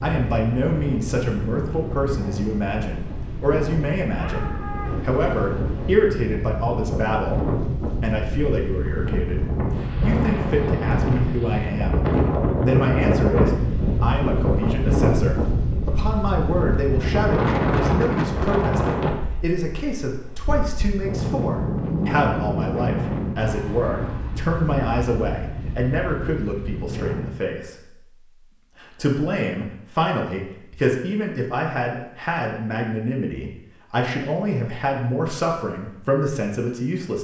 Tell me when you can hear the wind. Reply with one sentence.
You can hear the wind from 0.0 to 27.4 s.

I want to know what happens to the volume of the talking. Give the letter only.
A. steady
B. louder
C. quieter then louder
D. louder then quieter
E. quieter
A.